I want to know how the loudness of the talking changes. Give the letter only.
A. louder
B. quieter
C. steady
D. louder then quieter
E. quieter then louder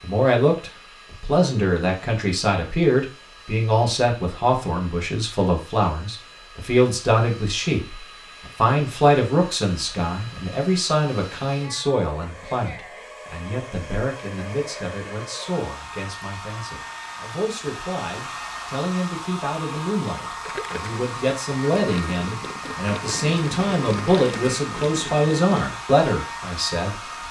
E.